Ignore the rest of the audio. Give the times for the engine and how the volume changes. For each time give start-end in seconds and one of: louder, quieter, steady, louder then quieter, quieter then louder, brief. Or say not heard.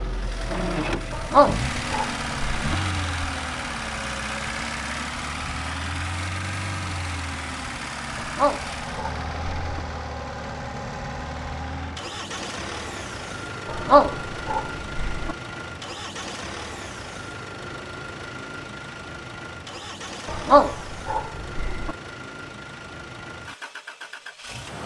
0.0-24.8 quieter.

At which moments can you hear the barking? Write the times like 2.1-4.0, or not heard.
1.1-2.8, 8.2-9.8, 13.7-15.3, 20.2-21.9.